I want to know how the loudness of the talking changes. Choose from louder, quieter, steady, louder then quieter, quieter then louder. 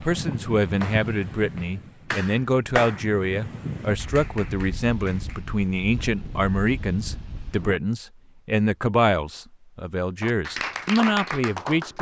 steady.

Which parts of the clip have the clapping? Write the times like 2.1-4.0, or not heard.
0.0-3.1, 4.0-5.5, 10.2-11.9.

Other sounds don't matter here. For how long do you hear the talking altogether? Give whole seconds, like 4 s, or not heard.
12 s.